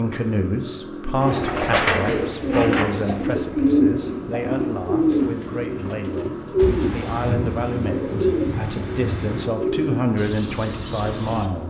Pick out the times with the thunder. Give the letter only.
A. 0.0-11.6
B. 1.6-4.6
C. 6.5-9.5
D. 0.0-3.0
C.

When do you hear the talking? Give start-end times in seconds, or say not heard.
0.0-11.6.